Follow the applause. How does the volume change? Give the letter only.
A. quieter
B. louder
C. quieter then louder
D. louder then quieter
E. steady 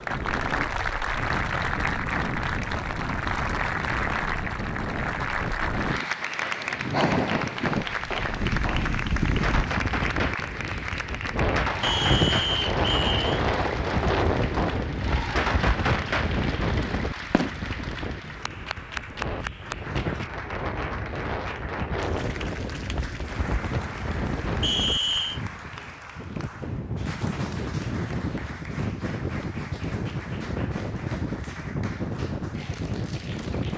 A.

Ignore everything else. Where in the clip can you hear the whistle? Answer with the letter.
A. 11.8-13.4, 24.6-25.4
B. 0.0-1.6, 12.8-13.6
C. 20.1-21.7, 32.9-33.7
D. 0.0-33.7
A.